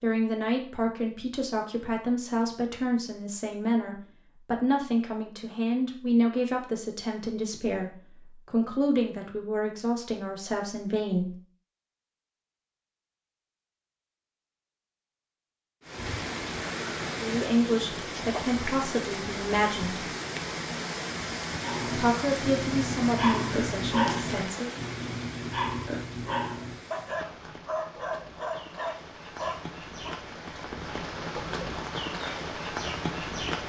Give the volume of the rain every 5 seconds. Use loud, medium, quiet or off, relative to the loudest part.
off, off, off, loud, loud, medium, loud.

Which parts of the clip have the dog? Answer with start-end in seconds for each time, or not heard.
21.6-30.2.